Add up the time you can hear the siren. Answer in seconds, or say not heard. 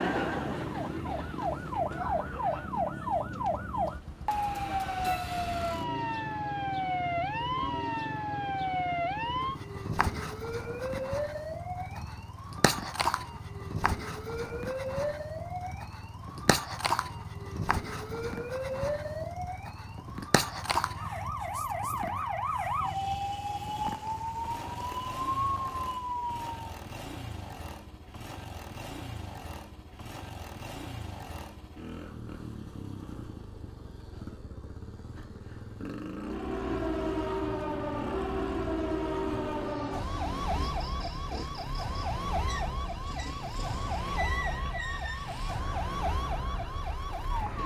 38 s.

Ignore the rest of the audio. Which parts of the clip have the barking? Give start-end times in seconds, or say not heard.
not heard.